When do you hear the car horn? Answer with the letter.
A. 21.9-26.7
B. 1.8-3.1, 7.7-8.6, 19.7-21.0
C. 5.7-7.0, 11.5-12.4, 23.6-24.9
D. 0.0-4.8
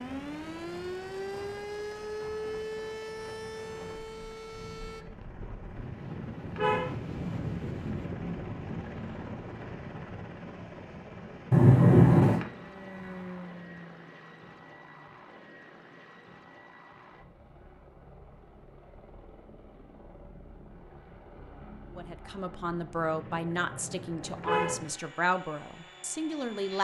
C.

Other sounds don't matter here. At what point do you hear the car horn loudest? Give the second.
12 s.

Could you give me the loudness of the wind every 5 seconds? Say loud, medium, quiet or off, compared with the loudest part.
quiet, loud, medium, off, off, off.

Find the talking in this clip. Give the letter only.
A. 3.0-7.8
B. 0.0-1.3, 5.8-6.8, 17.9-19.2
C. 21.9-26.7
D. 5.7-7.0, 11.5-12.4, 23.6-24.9
C.